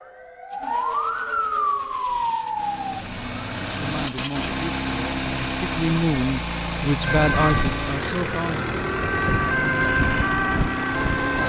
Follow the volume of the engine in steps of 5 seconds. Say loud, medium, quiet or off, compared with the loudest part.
medium, loud, loud.